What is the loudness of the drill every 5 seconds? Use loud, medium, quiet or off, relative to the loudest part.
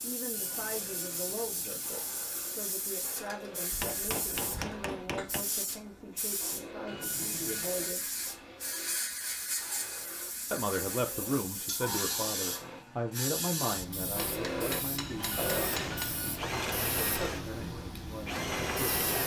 quiet, quiet, medium, loud.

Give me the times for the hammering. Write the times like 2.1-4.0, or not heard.
3.7-5.5, 14.2-16.2.